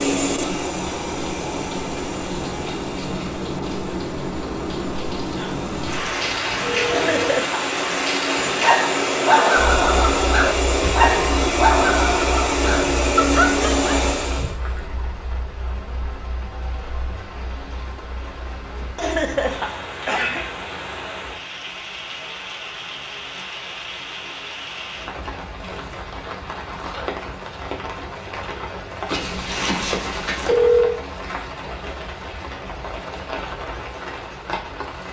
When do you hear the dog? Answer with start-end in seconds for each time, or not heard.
8.6-14.8.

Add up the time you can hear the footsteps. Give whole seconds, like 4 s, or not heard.
not heard.